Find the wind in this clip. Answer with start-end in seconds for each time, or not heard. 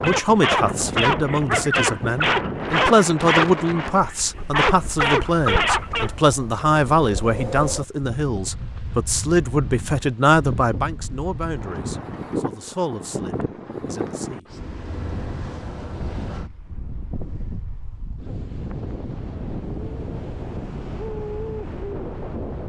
0.0-22.6.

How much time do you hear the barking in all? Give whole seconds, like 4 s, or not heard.
6 s.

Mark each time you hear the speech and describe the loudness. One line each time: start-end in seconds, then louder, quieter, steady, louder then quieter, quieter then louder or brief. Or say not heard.
0.0-14.4 quieter.